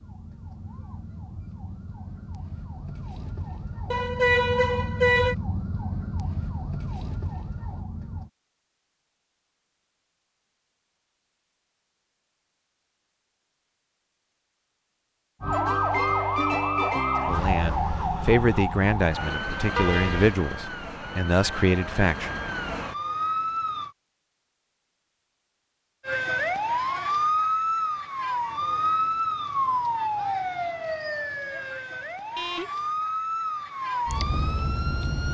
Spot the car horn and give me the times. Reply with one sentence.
You can hear the car horn from 3.9 to 5.3 s, from 19.8 to 20.4 s and from 32.4 to 32.9 s.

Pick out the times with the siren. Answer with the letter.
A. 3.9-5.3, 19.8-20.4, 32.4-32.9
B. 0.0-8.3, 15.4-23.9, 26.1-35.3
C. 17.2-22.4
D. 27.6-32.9
B.